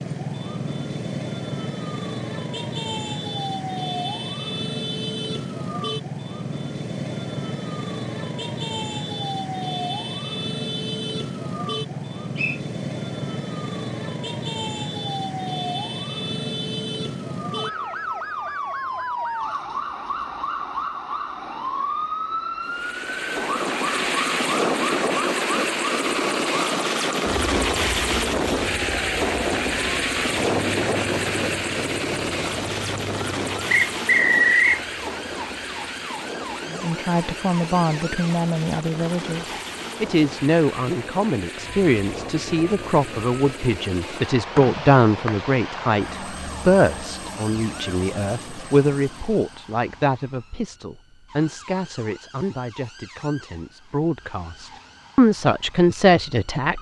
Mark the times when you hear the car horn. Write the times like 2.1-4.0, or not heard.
not heard.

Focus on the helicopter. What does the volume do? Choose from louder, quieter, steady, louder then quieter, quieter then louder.
quieter.